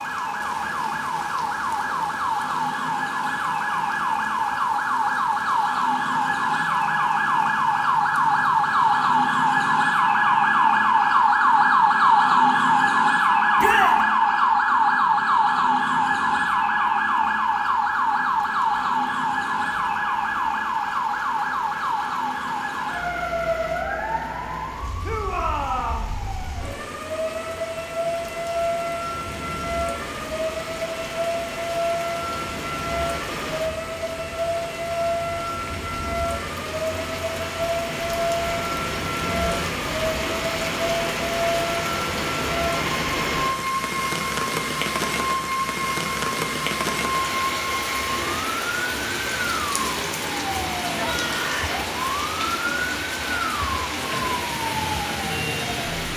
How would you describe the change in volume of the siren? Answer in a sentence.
The loudness of the siren goes down.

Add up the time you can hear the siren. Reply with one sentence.
You can hear the siren for 56 seconds altogether.